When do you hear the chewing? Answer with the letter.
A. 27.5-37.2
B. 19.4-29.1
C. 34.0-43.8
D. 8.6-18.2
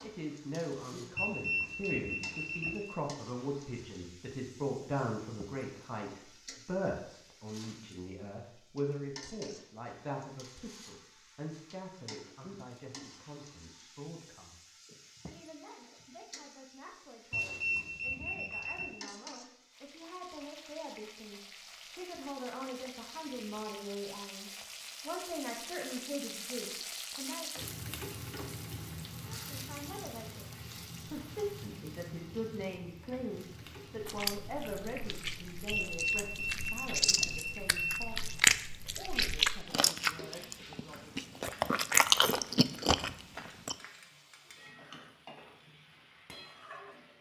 C.